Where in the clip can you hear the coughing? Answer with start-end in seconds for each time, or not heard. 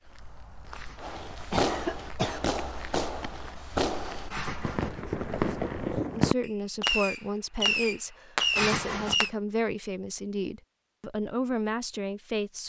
0.8-2.4, 4.3-5.0, 8.6-9.3.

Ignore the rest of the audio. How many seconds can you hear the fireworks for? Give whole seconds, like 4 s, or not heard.
8 s.